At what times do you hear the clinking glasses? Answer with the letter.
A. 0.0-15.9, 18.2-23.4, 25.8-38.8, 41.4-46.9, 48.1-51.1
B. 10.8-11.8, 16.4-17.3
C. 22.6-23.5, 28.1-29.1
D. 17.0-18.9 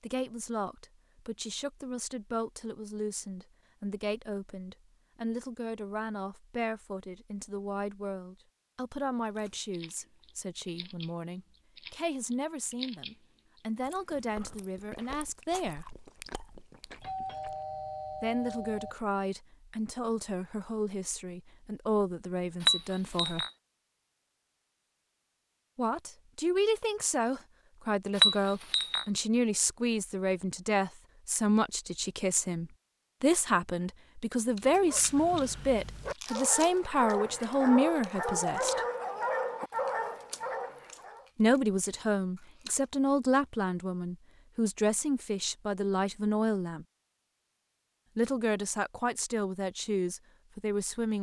C.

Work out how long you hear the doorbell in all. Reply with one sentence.
The doorbell can be heard for 2 seconds in total.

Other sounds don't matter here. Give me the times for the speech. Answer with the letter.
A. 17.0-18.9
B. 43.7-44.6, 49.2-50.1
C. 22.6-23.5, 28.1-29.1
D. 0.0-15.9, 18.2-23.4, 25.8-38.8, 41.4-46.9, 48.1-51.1
D.